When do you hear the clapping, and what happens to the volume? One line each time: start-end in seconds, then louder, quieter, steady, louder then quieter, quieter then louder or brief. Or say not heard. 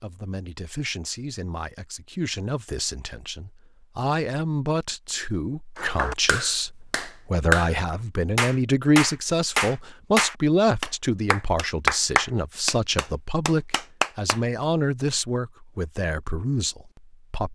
5.8-7.8 brief
8.3-14.4 quieter.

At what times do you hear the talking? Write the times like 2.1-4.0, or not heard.
0.0-17.4.